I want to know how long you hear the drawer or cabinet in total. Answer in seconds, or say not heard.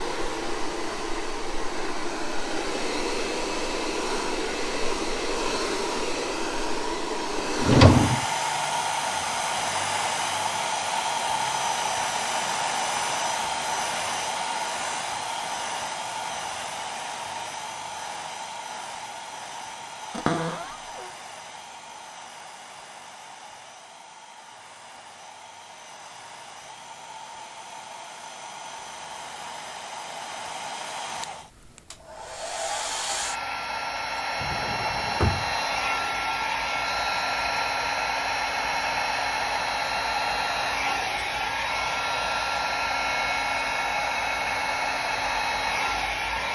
3 s.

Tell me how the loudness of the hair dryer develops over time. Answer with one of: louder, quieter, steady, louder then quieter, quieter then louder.
quieter then louder.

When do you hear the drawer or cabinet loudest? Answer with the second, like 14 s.
8 s.